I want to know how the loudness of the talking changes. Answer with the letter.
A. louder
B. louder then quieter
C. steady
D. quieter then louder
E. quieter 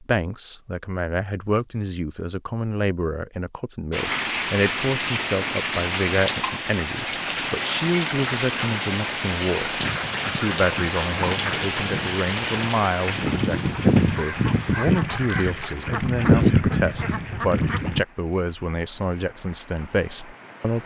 C.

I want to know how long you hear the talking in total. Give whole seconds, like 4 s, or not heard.
21 s.